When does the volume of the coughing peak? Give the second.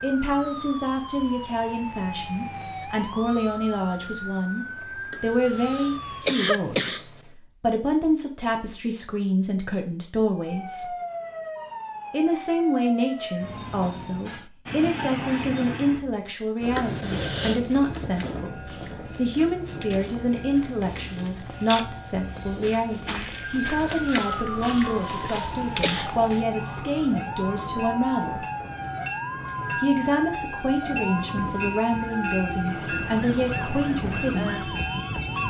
6 s.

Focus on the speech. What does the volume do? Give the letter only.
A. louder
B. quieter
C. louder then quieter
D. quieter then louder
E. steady
E.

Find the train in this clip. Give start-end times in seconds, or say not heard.
14.7-35.4.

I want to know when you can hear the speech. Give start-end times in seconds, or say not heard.
0.0-10.9, 12.1-28.4, 29.8-34.9.